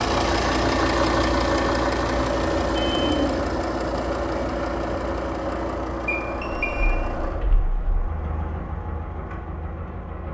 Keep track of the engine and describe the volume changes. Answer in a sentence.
The loudness of the engine goes down.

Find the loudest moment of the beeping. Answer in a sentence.
The loudest moment of the beeping is at 3 seconds.